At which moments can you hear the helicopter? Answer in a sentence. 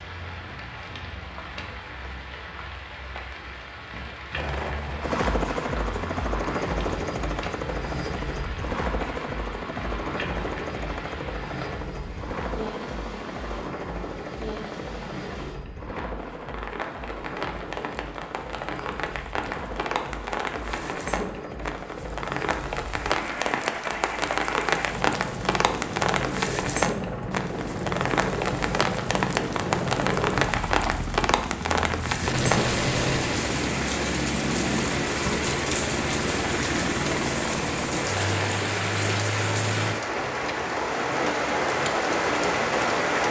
You can hear the helicopter from 4.3 to 40.0 s.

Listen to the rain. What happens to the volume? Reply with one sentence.
The loudness of the rain goes up.